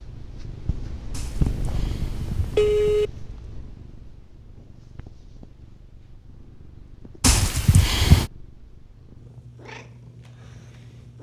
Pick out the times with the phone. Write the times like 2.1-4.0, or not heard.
1.1-3.1, 7.2-8.3.